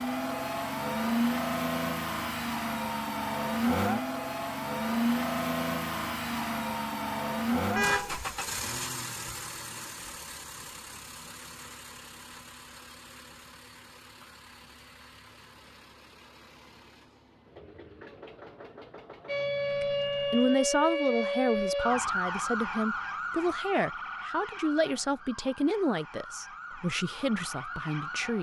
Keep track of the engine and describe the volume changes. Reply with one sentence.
The volume of the engine goes down.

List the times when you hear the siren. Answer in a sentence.
You can hear the siren from 19.2 to 28.3 s.